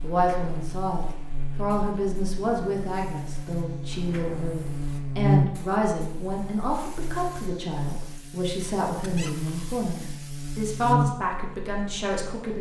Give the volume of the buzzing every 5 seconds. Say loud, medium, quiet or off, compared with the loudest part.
medium, loud, loud.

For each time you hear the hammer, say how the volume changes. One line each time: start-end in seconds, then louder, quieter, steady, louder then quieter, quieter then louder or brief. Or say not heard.
not heard.